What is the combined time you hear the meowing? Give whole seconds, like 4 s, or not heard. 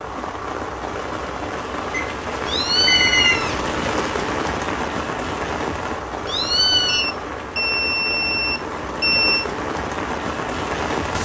2 s.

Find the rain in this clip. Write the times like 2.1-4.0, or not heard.
0.0-11.1.